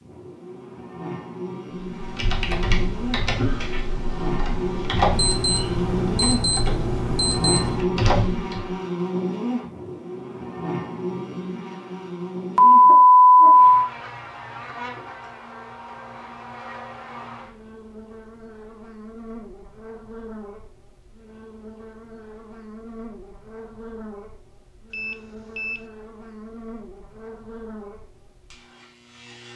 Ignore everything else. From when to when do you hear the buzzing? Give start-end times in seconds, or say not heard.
0.0-29.5.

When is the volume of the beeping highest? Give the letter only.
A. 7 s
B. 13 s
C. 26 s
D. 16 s
B.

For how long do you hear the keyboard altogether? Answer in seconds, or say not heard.
7 s.